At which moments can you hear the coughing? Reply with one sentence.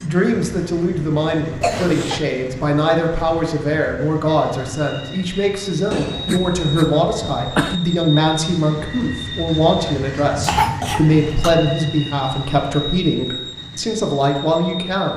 The coughing can be heard from 1.6 to 2.2 s, from 5.9 to 7.8 s and from 10.4 to 11.5 s.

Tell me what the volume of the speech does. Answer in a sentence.
The loudness of the speech stays about the same.